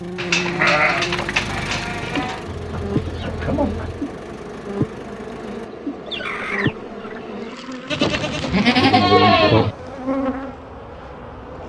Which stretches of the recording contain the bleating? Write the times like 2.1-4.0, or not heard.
0.1-2.4, 7.9-9.8.